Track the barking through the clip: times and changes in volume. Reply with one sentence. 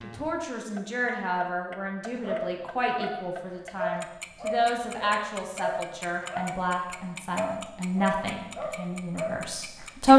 The barking can be heard from 2.2 to 9.8 s, at a steady volume.